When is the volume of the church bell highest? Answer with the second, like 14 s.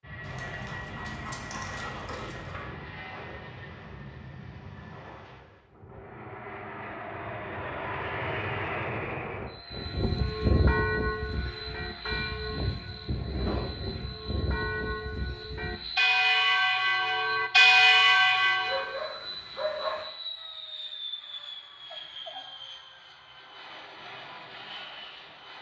18 s.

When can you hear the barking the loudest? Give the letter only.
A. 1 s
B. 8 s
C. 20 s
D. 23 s
C.